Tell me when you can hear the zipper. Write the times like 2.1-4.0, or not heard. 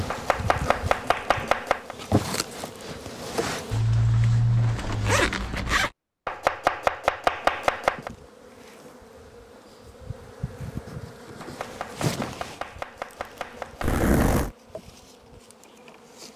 3.7-5.9, 13.8-14.6.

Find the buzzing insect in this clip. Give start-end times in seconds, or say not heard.
0.0-3.8, 7.3-16.3.